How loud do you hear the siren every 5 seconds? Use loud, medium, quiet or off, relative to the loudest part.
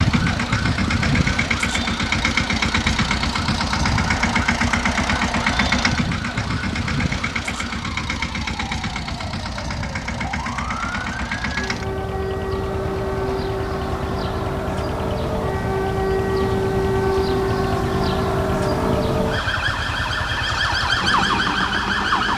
medium, quiet, medium, loud, loud.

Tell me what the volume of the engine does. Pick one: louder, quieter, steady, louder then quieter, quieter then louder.
quieter.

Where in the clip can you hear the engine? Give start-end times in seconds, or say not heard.
0.0-22.3.